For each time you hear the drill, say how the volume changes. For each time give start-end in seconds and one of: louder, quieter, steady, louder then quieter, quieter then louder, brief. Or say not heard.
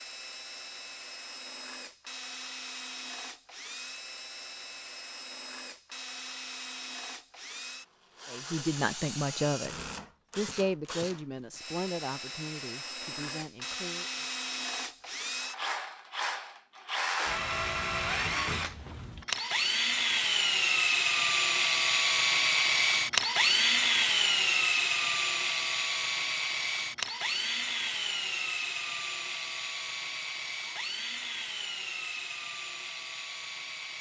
0.0-33.9 louder then quieter.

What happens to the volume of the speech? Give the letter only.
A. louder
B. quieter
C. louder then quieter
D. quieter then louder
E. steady
B.